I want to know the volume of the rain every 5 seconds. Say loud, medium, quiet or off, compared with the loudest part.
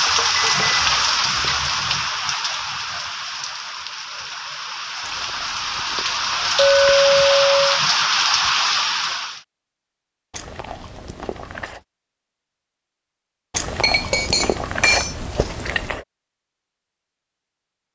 loud, loud, off, off.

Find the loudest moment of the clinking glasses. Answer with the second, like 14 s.
7 s.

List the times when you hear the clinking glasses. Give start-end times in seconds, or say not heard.
0.1-1.7, 6.5-7.8, 13.8-15.4.